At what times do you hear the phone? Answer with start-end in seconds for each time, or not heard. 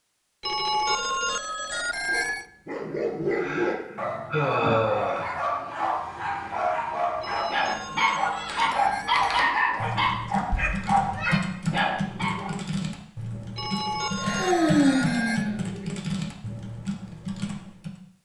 0.4-2.5, 7.2-9.2, 13.6-15.5.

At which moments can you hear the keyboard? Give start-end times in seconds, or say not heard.
8.3-17.9.